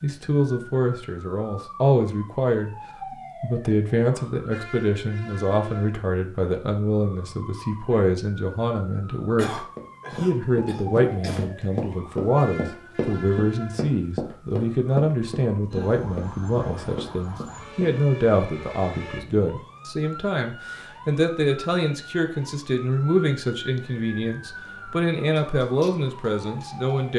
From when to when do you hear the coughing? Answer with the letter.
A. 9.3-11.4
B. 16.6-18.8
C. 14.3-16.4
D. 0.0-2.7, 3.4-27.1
A.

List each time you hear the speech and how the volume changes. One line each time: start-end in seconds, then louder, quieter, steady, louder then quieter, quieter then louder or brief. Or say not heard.
0.0-2.7 brief
3.4-27.1 steady.